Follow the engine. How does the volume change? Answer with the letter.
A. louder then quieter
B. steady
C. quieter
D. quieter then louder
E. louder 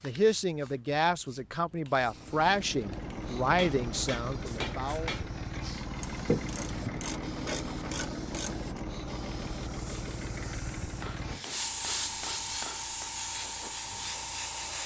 C.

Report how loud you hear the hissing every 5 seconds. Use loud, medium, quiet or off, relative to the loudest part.
quiet, quiet, loud.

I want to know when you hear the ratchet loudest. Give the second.
6 s.